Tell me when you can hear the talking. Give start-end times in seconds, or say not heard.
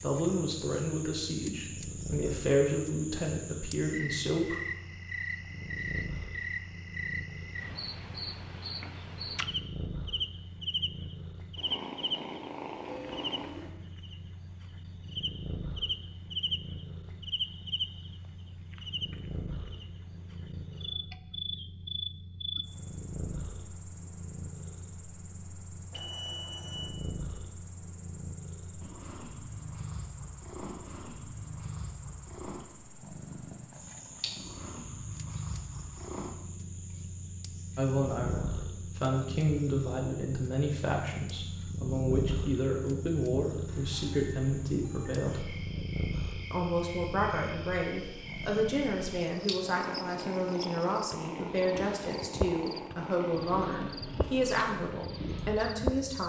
0.0-4.5, 37.8-45.5, 46.5-56.2.